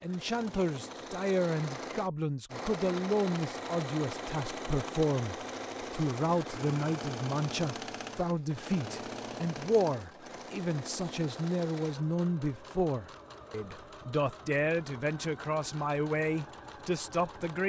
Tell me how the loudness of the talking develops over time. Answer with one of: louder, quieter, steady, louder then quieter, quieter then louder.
steady.